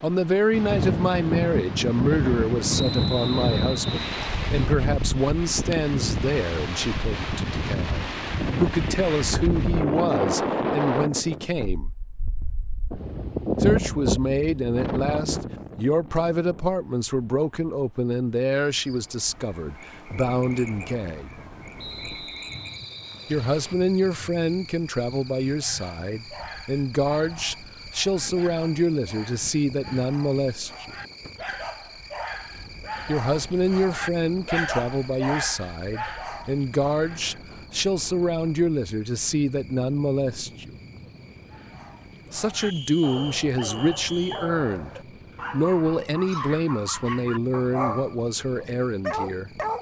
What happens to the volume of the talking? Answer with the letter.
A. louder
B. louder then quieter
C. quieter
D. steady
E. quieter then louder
D.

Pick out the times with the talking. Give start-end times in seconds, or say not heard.
0.0-11.9, 13.6-21.3, 23.3-30.9, 33.0-40.8, 42.3-49.5.